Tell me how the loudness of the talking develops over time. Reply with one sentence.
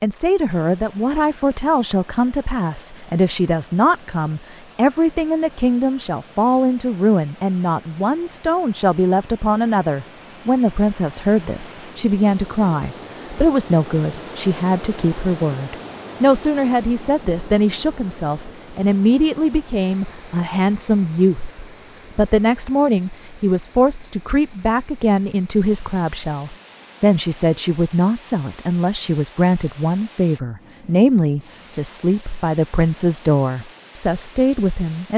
The volume of the talking stays about the same.